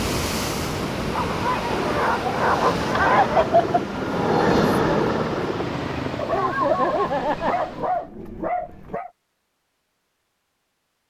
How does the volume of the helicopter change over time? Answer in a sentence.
The loudness of the helicopter goes up, then down.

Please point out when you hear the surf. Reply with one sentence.
The surf can be heard from 0.0 to 8.1 s.